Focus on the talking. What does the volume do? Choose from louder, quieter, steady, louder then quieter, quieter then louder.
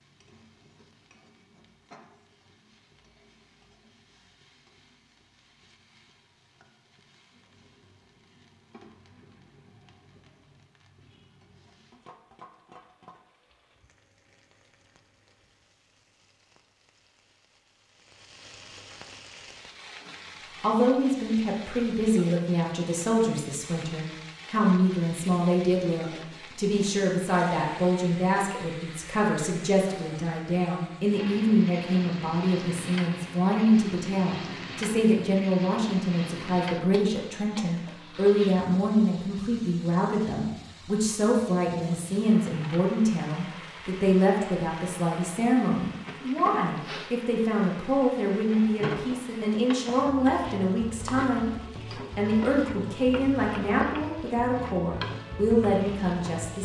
steady.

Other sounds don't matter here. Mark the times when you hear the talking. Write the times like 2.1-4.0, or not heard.
20.6-51.5, 52.1-56.6.